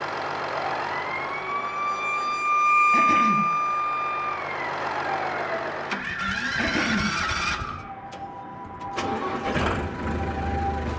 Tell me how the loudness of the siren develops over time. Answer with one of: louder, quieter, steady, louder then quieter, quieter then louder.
quieter.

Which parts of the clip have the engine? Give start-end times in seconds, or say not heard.
0.0-10.9.